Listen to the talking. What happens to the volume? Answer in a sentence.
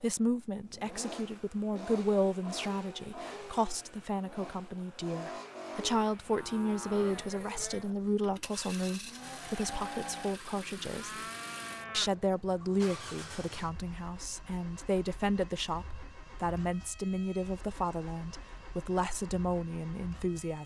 The volume of the talking stays about the same.